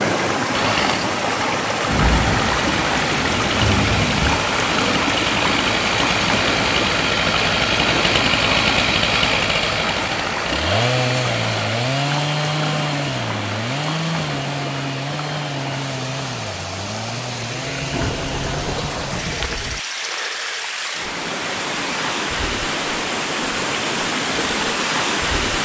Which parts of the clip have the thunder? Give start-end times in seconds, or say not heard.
1.9-4.5, 17.9-19.8.